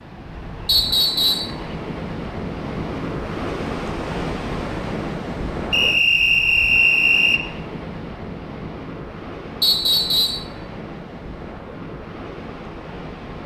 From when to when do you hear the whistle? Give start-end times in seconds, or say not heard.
0.7-1.5, 5.7-7.4, 9.6-10.4.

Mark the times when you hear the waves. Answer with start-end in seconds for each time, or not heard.
0.0-13.4.